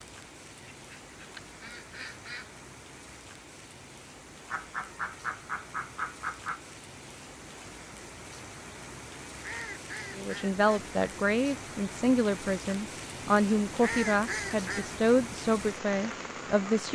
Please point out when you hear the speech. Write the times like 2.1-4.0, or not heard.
10.2-16.9.